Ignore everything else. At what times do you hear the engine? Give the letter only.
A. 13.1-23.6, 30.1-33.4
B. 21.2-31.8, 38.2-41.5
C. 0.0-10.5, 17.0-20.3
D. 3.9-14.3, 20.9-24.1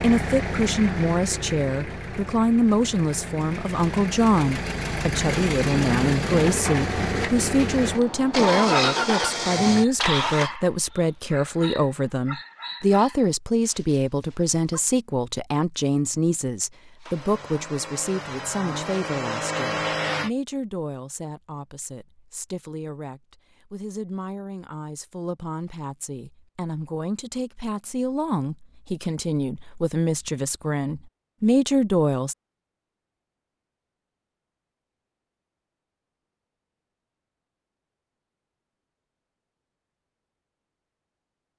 C.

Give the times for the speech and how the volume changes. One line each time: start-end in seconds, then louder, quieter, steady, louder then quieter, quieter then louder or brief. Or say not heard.
0.0-32.4 quieter then louder.